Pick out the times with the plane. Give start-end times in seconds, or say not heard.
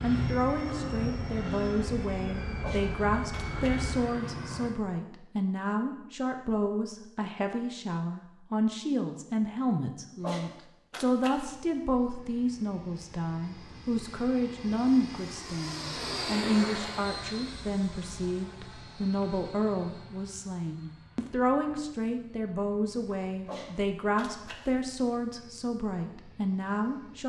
0.0-4.7, 11.4-27.2.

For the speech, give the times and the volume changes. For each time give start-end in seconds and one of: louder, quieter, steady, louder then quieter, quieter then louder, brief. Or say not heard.
0.0-27.2 steady.